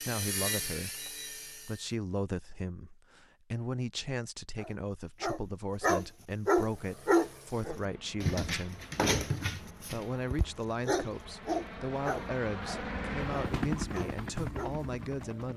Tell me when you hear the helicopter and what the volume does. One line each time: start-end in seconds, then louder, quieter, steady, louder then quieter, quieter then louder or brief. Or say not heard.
0.0-1.9 brief
6.5-15.5 louder.